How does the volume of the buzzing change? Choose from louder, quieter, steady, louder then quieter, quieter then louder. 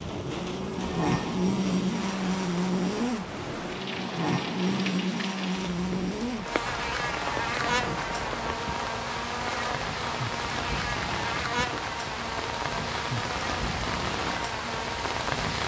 quieter.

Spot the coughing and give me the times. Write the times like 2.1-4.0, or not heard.
not heard.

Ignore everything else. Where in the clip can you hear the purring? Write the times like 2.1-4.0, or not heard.
not heard.